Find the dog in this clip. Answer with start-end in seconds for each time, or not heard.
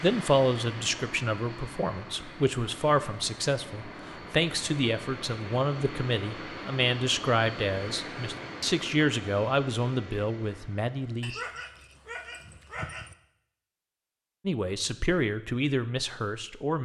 11.2-13.2.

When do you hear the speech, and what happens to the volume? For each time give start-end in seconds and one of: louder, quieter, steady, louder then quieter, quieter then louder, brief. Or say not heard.
0.0-11.3 steady
14.4-16.7 brief.